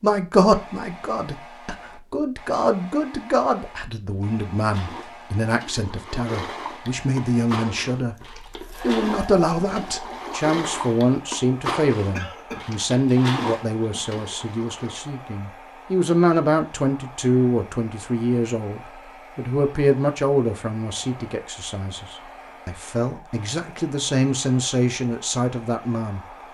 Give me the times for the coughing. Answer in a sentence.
The coughing can be heard from 12.1 to 12.8 s.